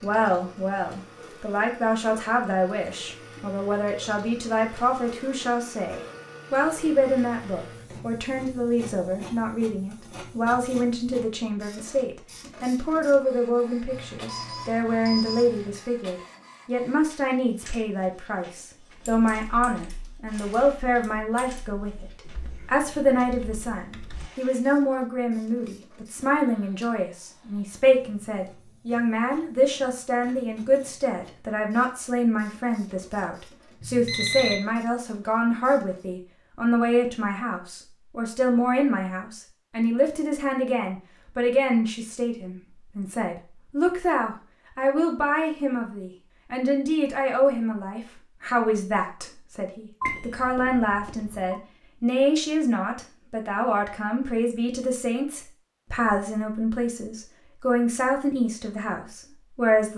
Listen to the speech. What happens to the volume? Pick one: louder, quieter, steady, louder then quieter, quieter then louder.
steady.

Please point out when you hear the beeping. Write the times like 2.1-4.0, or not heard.
13.9-15.8, 33.8-34.5, 50.0-51.5.